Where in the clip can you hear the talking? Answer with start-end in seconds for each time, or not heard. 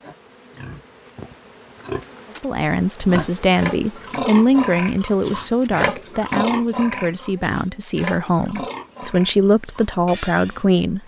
2.4-11.0.